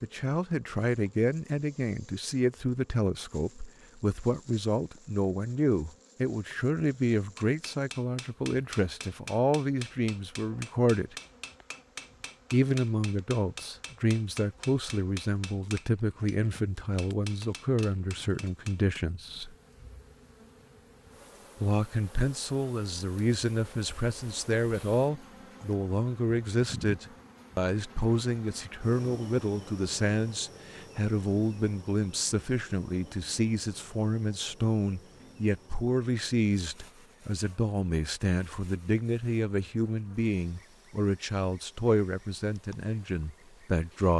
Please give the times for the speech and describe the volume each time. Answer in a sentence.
The speech can be heard from 0.0 to 11.2 s, at a steady volume; from 12.5 to 19.6 s, at a steady volume; and from 21.6 to 44.1 s, at a steady volume.